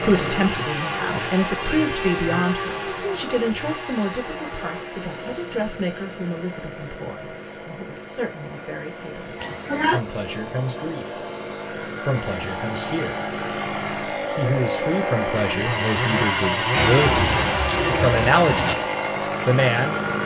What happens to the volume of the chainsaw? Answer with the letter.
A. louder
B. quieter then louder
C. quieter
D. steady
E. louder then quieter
B.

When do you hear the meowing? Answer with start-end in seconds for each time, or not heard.
1.6-3.0, 16.7-18.8.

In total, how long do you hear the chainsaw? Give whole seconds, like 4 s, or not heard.
20 s.